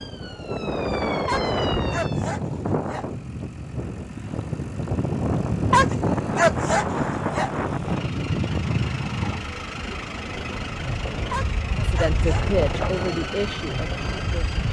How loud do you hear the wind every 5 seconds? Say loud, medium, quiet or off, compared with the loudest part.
loud, loud, medium.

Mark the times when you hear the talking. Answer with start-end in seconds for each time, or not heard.
11.8-14.6.